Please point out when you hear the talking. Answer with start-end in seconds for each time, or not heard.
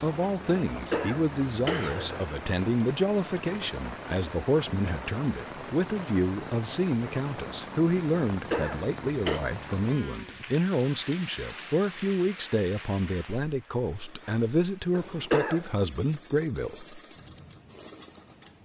0.0-16.8.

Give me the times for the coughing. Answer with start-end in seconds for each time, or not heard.
0.7-2.4, 8.3-9.4, 14.9-15.7.